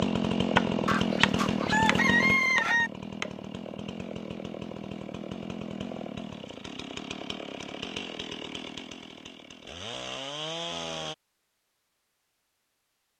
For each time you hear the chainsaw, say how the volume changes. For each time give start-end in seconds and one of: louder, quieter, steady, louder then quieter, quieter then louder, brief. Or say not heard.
0.0-11.2 quieter.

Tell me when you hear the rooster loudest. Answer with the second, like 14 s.
2 s.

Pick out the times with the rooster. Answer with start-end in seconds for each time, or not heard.
0.8-2.9.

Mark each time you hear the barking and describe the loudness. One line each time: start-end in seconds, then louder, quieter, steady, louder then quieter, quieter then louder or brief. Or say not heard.
not heard.